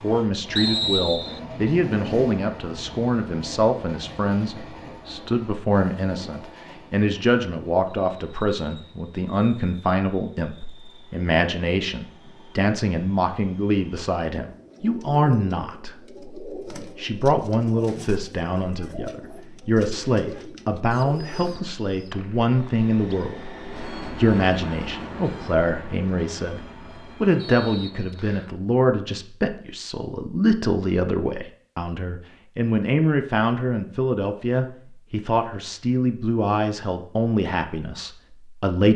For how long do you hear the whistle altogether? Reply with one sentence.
You can hear the whistle for 4 seconds altogether.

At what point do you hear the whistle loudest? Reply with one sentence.
The volume of the whistle peaks at 1 second.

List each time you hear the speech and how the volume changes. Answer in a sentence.
You can hear the speech from 0.0 to 38.9 s, at a steady volume.